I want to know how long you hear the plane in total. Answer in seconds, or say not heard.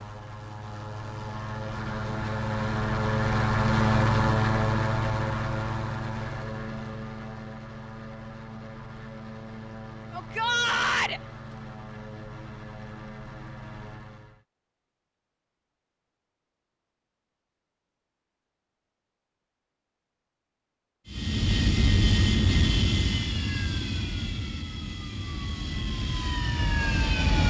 21 s.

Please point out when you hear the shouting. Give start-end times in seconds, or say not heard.
10.1-11.2.